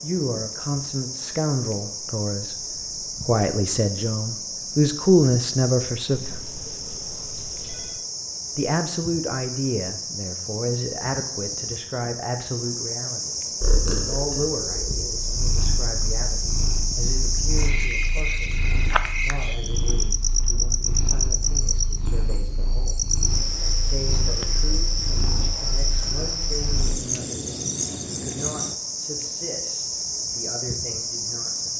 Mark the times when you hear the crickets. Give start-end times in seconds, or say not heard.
0.0-31.7.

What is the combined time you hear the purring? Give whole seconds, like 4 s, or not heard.
13 s.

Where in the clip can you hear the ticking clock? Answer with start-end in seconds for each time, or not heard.
not heard.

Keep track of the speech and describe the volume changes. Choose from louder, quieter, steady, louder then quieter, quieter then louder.
quieter.